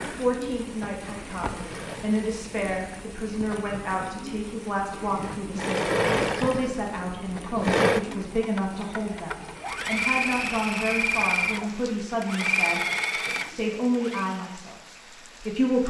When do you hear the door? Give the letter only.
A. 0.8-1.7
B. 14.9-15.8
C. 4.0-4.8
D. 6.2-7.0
A.